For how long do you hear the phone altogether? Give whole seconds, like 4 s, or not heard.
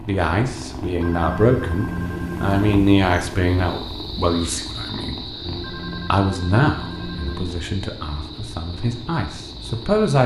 4 s.